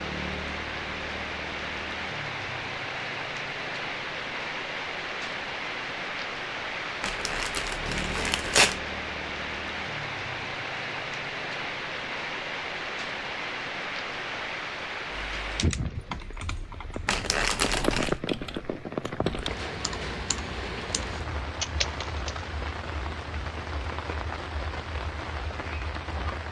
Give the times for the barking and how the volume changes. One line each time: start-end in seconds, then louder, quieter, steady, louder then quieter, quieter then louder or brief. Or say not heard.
not heard.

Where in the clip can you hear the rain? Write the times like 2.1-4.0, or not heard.
0.0-26.4.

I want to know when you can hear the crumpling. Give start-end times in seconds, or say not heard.
7.0-8.8, 17.1-18.1.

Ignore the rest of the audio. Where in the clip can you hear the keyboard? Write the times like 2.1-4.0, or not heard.
15.3-22.4.